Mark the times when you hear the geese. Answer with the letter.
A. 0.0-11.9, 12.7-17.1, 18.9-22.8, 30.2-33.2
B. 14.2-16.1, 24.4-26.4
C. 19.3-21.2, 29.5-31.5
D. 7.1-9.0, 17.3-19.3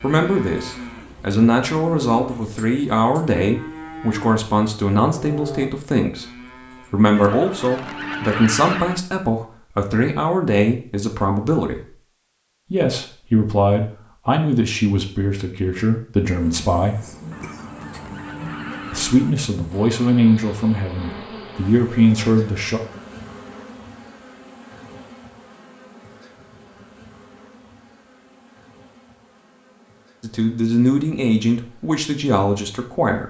D.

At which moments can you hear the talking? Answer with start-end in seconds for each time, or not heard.
0.0-11.9, 12.7-17.1, 18.9-22.8, 30.2-33.2.